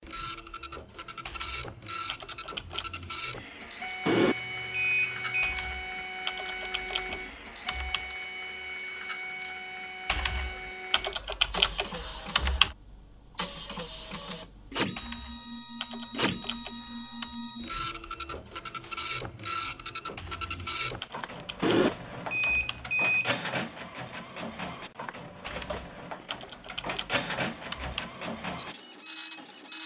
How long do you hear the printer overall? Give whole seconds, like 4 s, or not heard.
30 s.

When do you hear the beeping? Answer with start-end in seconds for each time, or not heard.
4.0-5.5, 21.6-23.4.